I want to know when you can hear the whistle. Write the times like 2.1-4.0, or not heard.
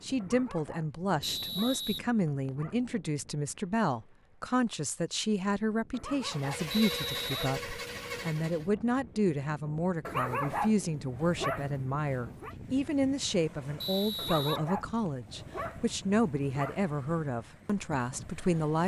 1.2-2.5, 6.7-7.5, 13.8-15.1.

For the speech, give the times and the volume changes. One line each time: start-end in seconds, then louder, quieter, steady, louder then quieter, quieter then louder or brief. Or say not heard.
0.0-18.8 steady.